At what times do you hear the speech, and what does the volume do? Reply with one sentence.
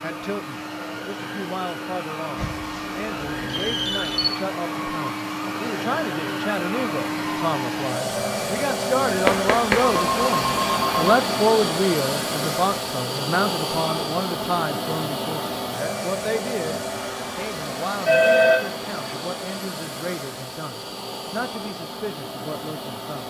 You can hear the speech from 0.0 to 23.2 s, getting louder then quieter.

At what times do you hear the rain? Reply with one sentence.
You can't hear the rain here.